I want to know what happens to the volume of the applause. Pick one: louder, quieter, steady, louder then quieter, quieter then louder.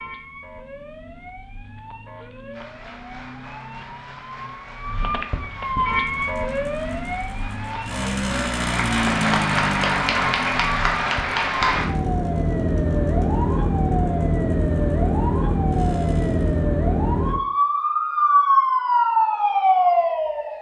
louder.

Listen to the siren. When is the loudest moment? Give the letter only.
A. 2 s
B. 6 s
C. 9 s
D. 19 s
D.